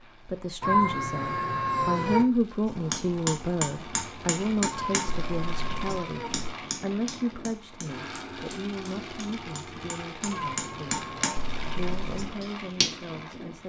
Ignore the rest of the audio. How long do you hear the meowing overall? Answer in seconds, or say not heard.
4 s.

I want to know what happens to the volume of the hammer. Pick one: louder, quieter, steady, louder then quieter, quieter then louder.
quieter then louder.